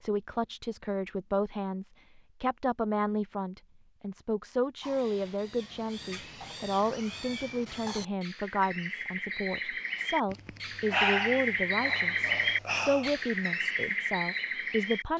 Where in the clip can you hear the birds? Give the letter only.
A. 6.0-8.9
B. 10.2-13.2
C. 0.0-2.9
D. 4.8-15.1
D.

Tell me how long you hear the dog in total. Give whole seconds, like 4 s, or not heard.
3 s.